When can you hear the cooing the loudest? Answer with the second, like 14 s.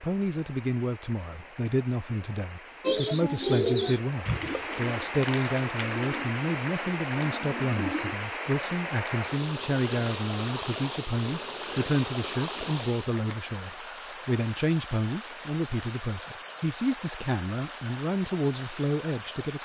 4 s.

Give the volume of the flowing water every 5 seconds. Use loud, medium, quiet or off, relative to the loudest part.
medium, loud, loud, medium.